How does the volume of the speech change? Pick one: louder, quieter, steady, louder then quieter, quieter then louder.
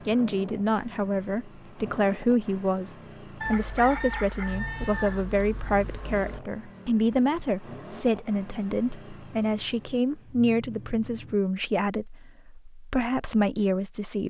steady.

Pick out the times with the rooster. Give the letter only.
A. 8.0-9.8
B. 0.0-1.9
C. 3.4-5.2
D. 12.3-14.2
C.